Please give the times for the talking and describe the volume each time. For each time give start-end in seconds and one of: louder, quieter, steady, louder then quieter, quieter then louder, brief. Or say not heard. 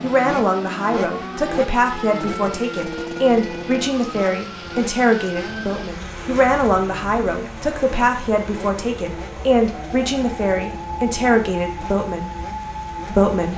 0.0-12.3 steady
13.1-13.5 brief.